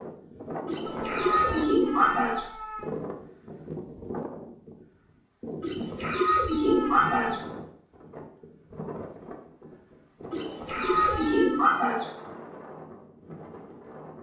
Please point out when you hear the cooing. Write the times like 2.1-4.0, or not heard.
0.7-2.5, 5.6-7.4, 10.3-12.1.